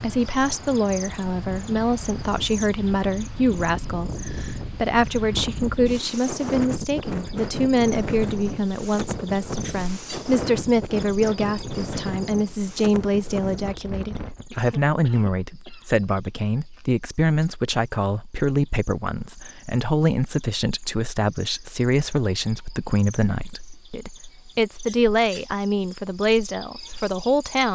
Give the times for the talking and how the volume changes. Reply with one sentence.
The talking can be heard from 0.0 to 27.7 s, at a steady volume.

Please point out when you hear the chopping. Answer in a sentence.
You can't hear the chopping here.